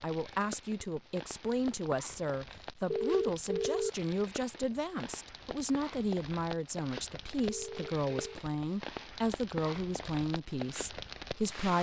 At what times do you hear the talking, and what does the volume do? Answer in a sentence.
You can hear the talking from 0.0 to 11.7 s, at a steady volume.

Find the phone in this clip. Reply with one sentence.
You can hear the phone from 2.9 to 3.9 s and from 7.5 to 8.4 s.